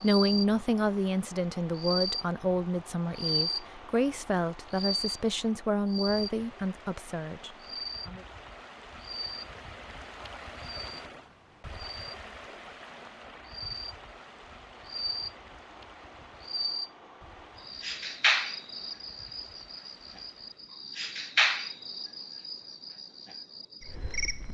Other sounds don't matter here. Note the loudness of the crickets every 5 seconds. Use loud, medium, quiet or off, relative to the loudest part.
loud, medium, medium, loud, loud.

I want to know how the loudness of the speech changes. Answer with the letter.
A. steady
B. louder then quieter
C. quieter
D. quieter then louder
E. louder
C.